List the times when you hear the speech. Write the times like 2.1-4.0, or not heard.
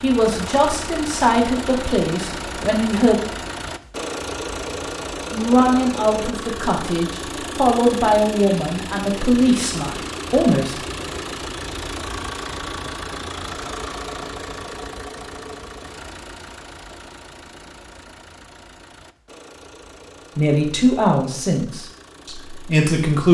0.0-3.1, 5.3-10.8, 20.4-23.2.